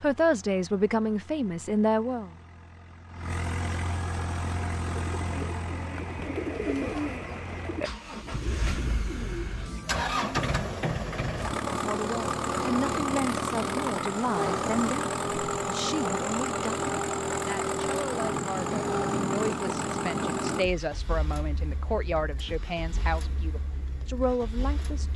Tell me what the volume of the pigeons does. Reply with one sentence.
The loudness of the pigeons goes up, then down.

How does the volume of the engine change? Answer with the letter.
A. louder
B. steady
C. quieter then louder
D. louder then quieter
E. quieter
D.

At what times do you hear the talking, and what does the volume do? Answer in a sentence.
The talking can be heard briefly from 0.0 to 2.3 s; and from 11.7 to 25.1 s, at a steady volume.